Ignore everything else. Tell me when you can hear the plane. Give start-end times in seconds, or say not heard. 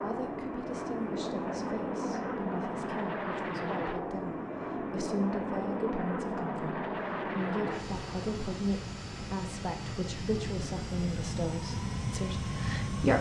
0.0-13.1.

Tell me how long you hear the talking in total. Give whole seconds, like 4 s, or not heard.
13 s.